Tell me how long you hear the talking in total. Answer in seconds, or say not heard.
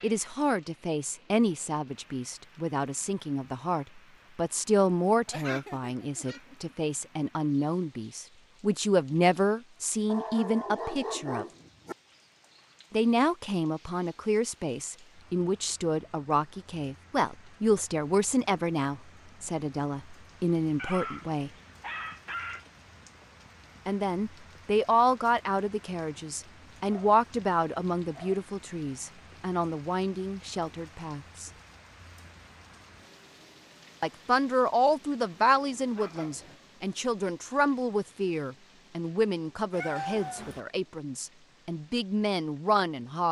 37 s.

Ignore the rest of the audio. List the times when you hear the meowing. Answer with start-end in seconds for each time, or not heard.
39.7-40.6.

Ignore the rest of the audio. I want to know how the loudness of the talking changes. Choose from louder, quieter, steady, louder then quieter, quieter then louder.
steady.